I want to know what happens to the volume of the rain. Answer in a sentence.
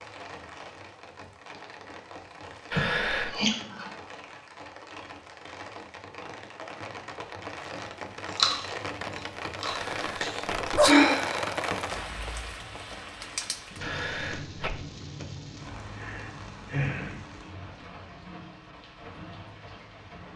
The volume of the rain goes up, then down.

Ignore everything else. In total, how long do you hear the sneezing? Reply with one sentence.
The sneezing can be heard for 3 seconds in total.